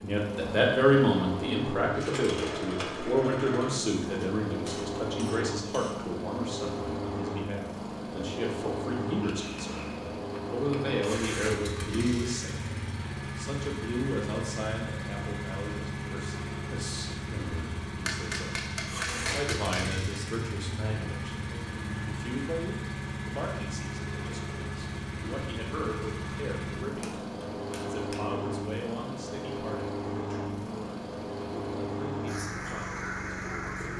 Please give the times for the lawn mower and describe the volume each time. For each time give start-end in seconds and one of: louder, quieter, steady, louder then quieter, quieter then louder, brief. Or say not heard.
0.0-33.9 steady.